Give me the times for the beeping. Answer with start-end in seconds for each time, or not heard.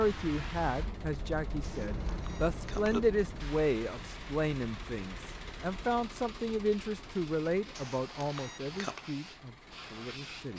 1.6-3.0, 7.8-9.1.